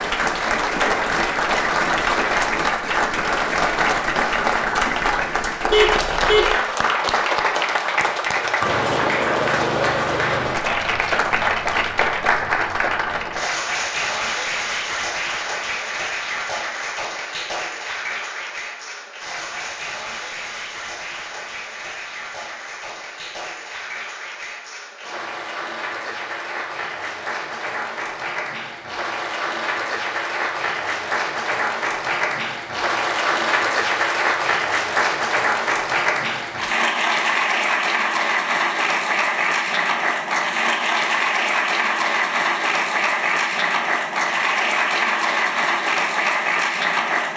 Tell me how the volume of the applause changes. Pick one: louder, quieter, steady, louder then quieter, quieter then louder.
quieter then louder.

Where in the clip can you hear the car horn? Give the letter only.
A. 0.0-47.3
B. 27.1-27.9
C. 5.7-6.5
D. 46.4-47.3
C.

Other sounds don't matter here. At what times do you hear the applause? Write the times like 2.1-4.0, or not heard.
0.0-47.3.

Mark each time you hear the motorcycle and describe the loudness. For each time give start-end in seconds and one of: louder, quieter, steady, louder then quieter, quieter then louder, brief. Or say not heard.
not heard.